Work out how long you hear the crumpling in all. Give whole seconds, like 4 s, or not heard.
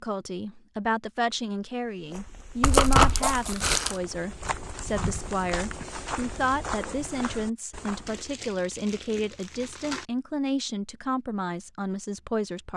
3 s.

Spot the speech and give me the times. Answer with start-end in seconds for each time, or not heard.
0.0-12.7.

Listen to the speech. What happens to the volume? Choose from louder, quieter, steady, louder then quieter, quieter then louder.
steady.